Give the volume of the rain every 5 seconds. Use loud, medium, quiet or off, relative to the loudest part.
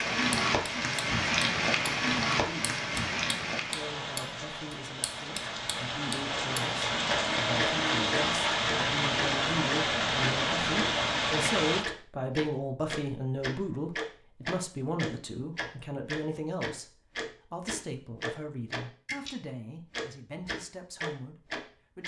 loud, loud, loud, off, off.